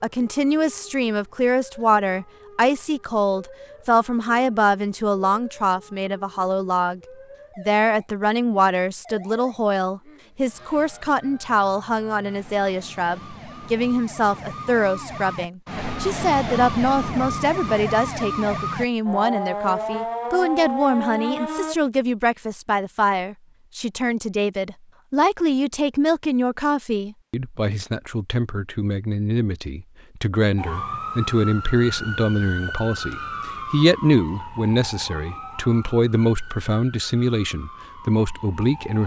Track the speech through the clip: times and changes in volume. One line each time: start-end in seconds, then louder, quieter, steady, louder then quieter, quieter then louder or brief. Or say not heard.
0.0-39.0 steady.